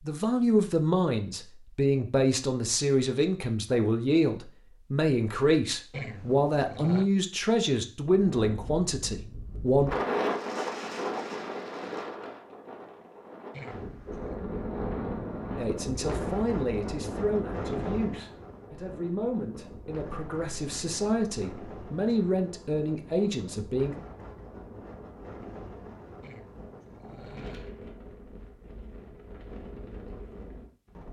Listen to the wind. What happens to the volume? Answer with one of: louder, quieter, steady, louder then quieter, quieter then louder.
quieter.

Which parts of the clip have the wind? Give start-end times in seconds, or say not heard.
8.1-31.0.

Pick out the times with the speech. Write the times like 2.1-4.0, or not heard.
0.0-9.9, 15.6-23.9.